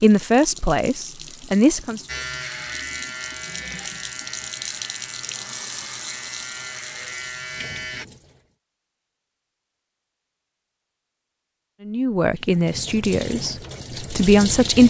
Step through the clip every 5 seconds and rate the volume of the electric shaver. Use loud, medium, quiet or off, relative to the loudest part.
loud, loud, off.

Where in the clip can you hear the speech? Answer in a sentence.
The speech can be heard from 0.0 to 2.0 s and from 11.8 to 14.8 s.